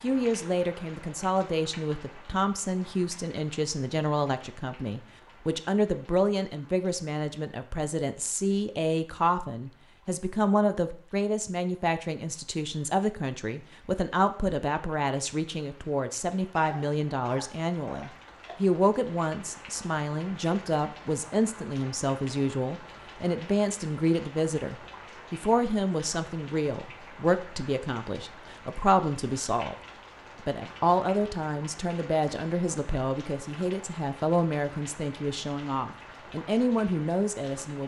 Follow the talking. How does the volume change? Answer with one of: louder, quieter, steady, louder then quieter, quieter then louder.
steady.